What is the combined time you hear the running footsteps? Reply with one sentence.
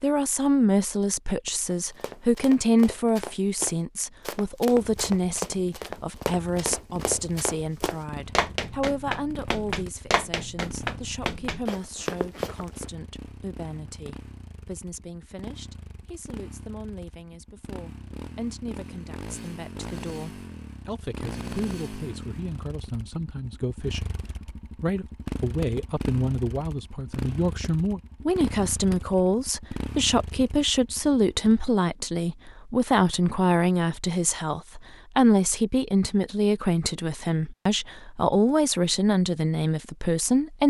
You can hear the running footsteps for 11 seconds altogether.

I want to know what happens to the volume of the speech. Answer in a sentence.
The volume of the speech goes down, then up.